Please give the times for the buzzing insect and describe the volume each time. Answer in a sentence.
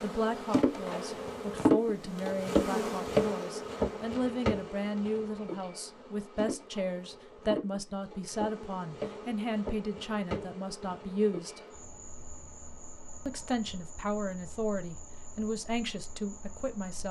The buzzing insect can be heard from 0.0 to 17.0 s, getting quieter.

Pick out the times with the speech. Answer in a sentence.
You can hear the speech from 0.0 to 11.6 s and from 13.2 to 17.0 s.